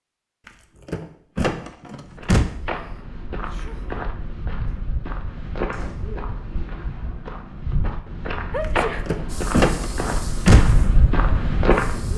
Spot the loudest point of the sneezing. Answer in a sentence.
The volume of the sneezing peaks at 9 seconds.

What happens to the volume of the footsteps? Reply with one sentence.
The volume of the footsteps goes up.